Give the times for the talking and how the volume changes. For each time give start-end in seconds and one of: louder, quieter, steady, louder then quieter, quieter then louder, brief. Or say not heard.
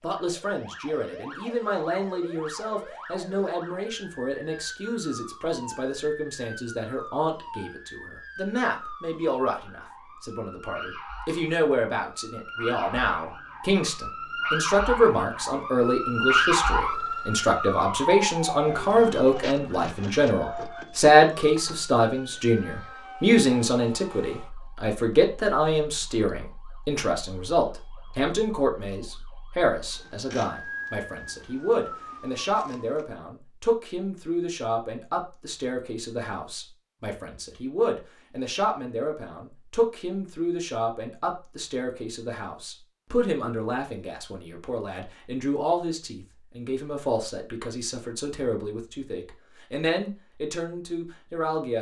0.0-51.7 louder then quieter.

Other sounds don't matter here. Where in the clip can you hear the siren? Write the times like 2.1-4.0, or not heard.
0.1-33.0.